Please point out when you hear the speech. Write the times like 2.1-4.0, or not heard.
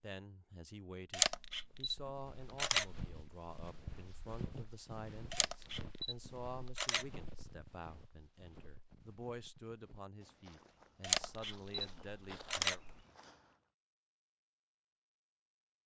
0.0-12.8.